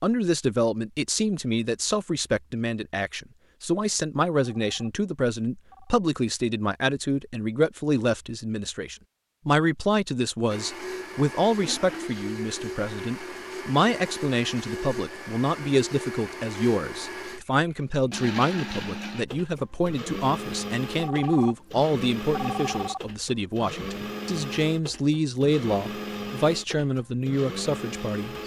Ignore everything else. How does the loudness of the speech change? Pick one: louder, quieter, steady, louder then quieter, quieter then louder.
steady.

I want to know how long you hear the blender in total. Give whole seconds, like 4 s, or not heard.
18 s.